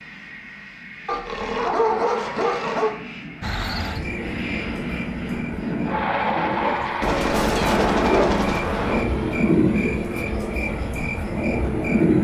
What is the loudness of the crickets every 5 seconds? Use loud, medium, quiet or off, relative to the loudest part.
medium, loud, loud.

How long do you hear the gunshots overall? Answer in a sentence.
The gunshots can be heard for 2 seconds in total.